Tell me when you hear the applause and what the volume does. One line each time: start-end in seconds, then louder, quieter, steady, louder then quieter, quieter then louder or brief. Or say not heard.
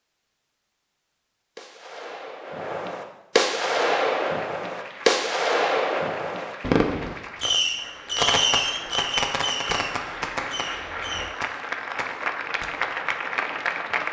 3.5-14.0 louder.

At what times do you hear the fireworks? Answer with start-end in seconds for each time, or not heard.
1.6-12.7.